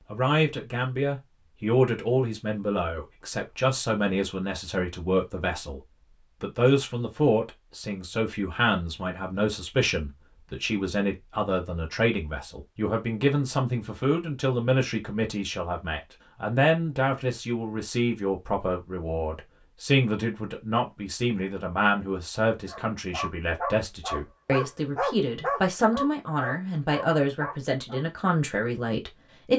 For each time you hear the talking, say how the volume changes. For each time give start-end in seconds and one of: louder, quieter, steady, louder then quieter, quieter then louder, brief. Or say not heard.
0.1-29.5 steady.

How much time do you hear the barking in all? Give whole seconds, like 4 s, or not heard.
5 s.